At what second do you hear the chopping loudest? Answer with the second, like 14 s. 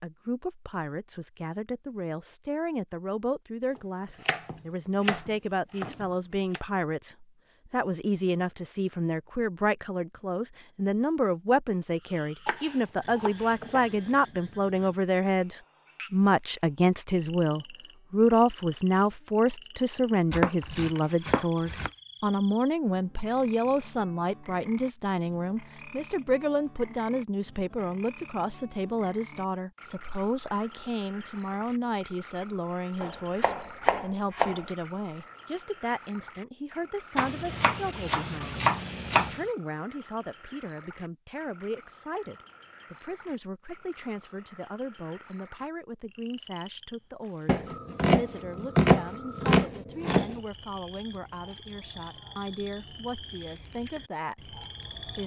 49 s.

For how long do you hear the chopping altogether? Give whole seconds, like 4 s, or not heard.
13 s.